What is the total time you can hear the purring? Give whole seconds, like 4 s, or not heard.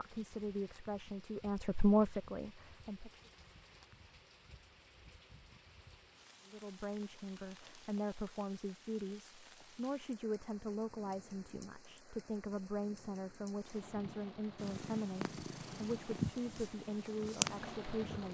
4 s.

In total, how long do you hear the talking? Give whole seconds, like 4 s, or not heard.
15 s.